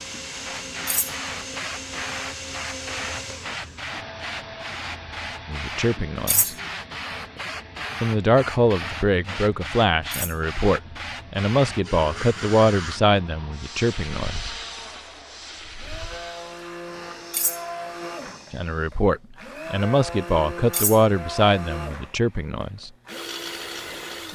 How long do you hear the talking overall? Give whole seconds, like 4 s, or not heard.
12 s.